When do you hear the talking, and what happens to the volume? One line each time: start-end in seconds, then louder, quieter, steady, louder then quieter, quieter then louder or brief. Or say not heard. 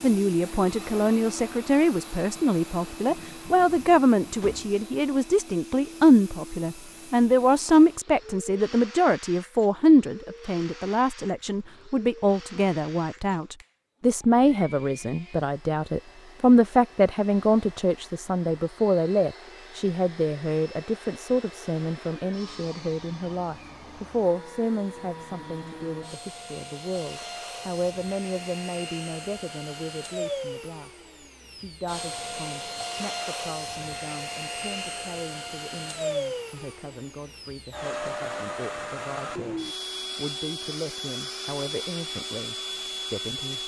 0.0-43.6 quieter.